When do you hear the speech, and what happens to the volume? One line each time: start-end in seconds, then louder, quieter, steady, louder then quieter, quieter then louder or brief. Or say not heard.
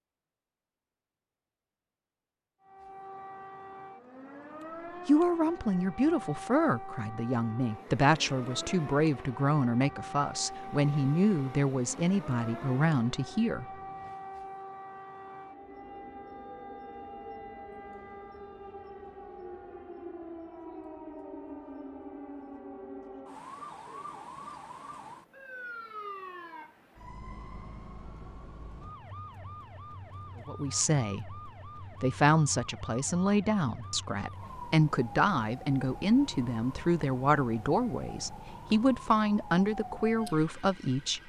5.0-13.7 steady
30.4-41.2 steady.